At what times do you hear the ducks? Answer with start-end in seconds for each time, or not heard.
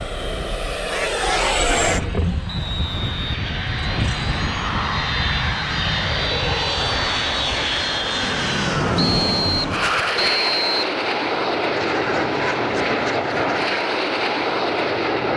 0.8-2.0, 11.8-13.8.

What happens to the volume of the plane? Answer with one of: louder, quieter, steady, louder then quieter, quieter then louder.
steady.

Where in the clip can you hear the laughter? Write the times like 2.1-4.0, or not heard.
not heard.